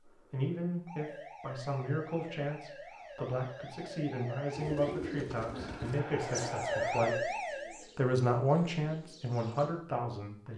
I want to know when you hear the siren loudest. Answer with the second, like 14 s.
7 s.